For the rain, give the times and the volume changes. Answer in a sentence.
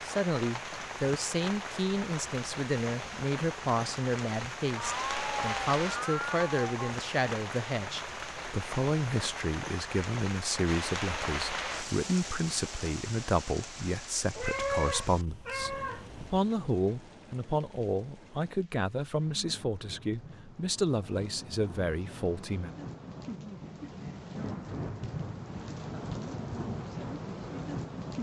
You can hear the rain from 0.0 to 28.1 s, getting quieter then louder.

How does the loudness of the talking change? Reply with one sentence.
The volume of the talking stays about the same.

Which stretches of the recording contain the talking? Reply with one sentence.
The talking can be heard from 0.1 to 22.7 s.